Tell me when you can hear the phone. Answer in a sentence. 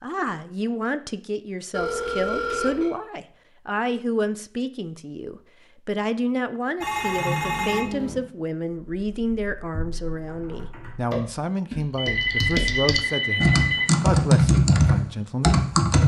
The phone can be heard from 1.7 to 3.0 s, from 6.8 to 8.2 s and from 11.9 to 13.8 s.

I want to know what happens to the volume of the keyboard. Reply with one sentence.
The volume of the keyboard goes up.